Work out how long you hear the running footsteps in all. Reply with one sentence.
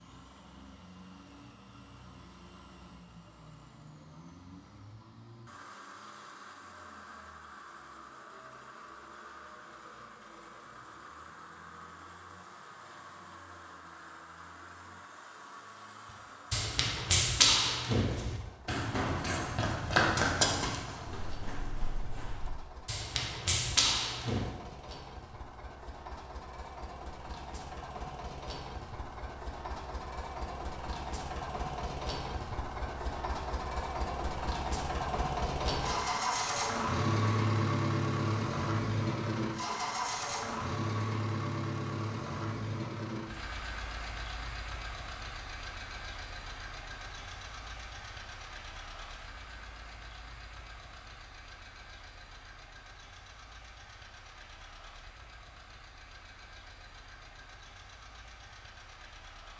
The running footsteps can be heard for 8 seconds in total.